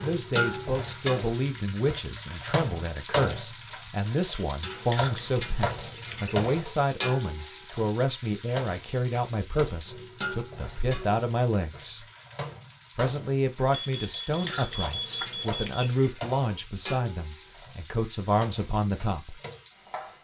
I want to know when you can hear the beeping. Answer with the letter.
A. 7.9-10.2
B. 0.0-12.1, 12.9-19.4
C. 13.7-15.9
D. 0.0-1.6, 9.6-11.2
C.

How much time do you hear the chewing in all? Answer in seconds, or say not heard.
3 s.